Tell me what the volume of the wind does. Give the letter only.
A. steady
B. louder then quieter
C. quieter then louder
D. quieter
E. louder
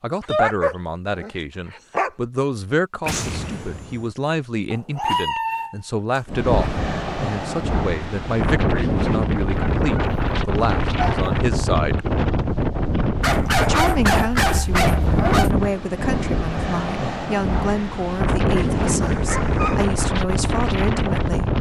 A.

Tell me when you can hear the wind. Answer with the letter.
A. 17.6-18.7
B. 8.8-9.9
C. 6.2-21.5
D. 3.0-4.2
C.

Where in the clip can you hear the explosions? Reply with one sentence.
You can hear the explosions from 3.0 to 4.2 s.